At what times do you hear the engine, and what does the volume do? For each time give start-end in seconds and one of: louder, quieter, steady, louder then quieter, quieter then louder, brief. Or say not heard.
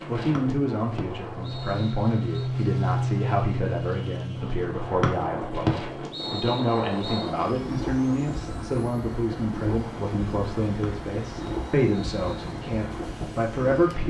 0.0-14.0 quieter.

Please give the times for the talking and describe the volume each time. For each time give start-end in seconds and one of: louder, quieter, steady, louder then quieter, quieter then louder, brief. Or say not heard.
0.1-14.0 steady.